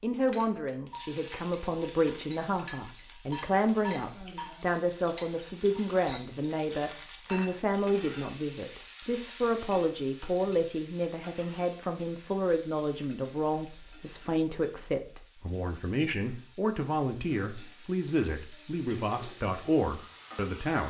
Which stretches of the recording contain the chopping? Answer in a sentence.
You can't hear the chopping here.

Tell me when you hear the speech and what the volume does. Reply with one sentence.
You can hear the speech from 0.0 to 20.8 s, at a steady volume.